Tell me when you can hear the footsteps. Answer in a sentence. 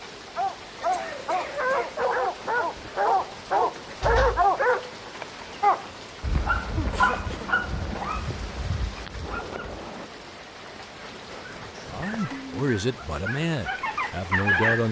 You can't hear the footsteps here.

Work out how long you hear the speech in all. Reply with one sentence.
You can hear the speech for 3 seconds altogether.